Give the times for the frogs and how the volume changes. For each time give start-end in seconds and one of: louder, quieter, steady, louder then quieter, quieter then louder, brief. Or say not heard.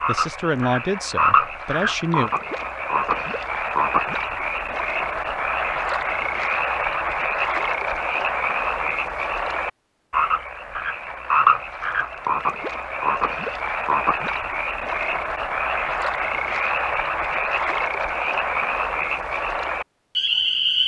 0.0-20.8 steady.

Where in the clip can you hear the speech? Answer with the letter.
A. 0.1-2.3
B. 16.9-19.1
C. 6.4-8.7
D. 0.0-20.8
A.